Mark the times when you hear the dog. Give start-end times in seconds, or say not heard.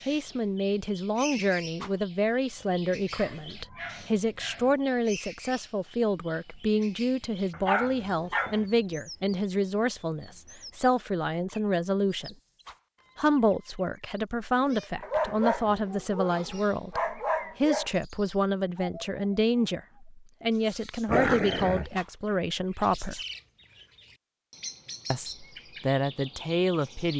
3.1-4.8, 7.5-8.7, 15.0-17.9, 21.1-21.9.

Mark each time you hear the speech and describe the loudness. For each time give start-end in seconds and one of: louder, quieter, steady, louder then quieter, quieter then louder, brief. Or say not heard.
0.0-12.3 steady
13.2-23.2 steady
25.1-27.1 brief.